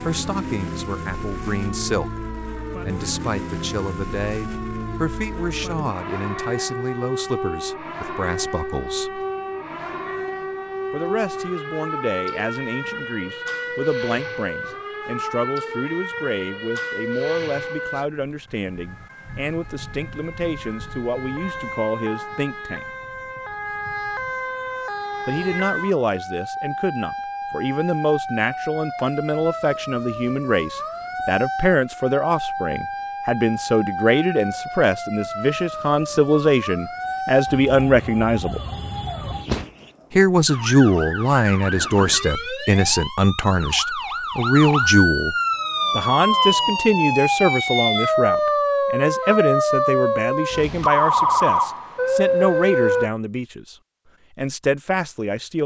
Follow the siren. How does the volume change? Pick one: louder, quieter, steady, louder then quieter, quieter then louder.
louder.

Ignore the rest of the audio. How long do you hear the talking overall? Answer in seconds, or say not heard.
49 s.